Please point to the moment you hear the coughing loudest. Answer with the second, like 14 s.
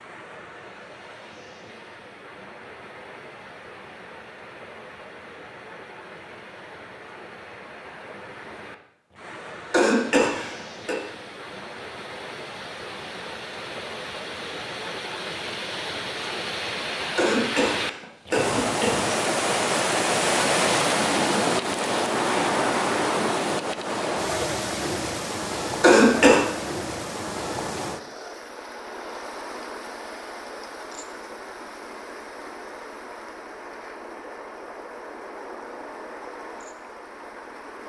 26 s.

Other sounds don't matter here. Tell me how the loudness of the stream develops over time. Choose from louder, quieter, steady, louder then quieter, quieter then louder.
louder then quieter.